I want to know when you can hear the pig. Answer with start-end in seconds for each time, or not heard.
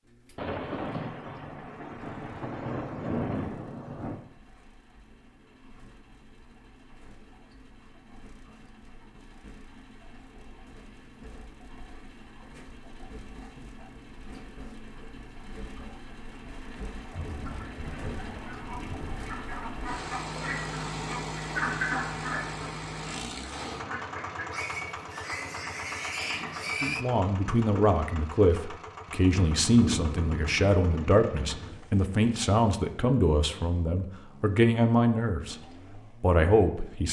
24.5-27.1.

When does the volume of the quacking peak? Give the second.
22 s.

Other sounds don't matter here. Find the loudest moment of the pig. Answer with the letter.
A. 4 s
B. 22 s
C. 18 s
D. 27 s
D.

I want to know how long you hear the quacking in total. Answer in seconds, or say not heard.
8 s.